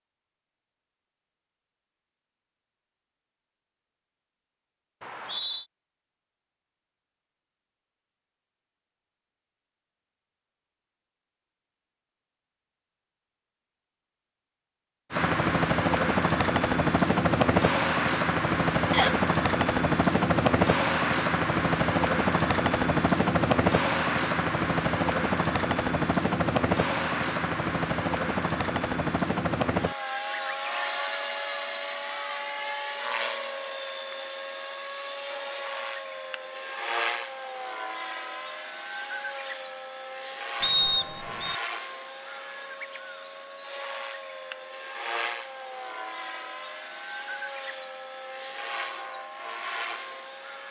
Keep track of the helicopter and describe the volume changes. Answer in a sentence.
The loudness of the helicopter goes down.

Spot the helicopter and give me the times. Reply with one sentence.
You can hear the helicopter from 15.1 to 50.6 s.